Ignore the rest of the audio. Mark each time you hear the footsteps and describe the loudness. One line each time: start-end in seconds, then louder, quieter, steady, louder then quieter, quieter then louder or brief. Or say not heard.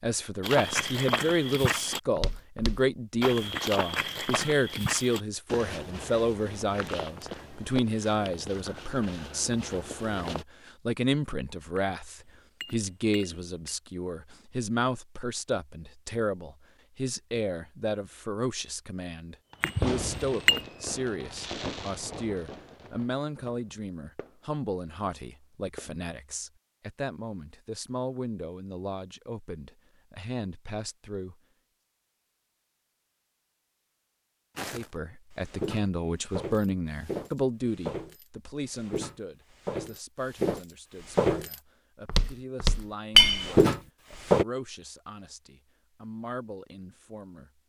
0.4-10.4 quieter
34.5-44.5 louder.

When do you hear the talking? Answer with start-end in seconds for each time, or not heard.
0.0-31.4, 34.7-47.5.